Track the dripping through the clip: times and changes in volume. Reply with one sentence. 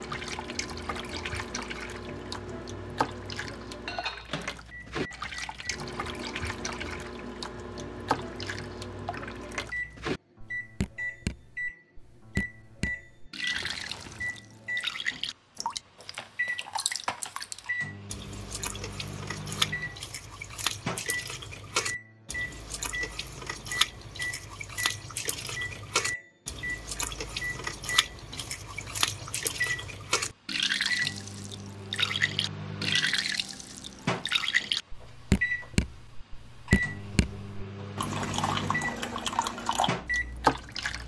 The dripping can be heard from 0.0 to 41.0 s, getting louder.